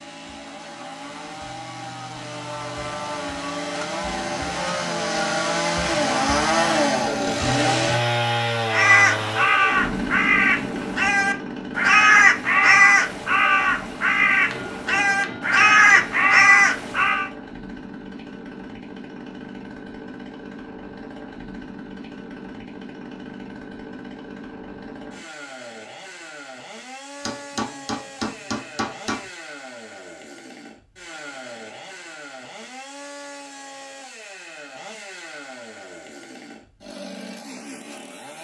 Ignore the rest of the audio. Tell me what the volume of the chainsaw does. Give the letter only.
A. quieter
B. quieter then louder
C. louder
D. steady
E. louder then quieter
A.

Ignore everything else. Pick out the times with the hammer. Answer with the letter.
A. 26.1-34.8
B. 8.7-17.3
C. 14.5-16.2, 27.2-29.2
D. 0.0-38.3
C.